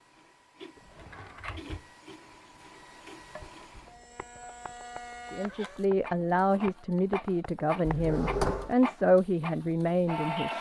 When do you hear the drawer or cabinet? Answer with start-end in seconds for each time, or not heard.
0.8-1.9, 7.8-8.8.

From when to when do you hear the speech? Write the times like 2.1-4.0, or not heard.
5.3-10.5.